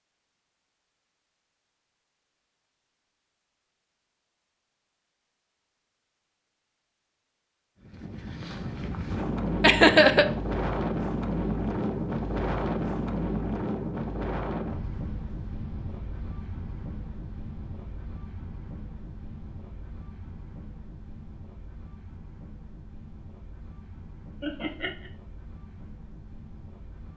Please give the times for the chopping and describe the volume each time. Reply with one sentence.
The chopping can't be heard in this clip.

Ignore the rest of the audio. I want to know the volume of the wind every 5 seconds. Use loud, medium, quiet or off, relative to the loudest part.
off, loud, loud, quiet, quiet, quiet.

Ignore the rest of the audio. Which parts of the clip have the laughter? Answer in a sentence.
You can hear the laughter from 9.6 to 10.2 s and from 24.4 to 25.1 s.